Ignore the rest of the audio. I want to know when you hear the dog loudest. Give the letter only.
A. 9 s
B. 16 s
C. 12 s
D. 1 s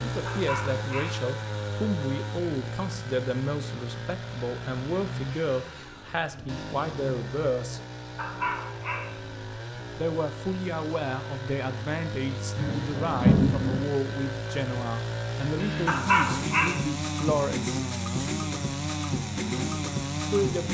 B.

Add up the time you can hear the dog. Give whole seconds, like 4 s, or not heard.
3 s.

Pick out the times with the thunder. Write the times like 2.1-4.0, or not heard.
12.6-13.8.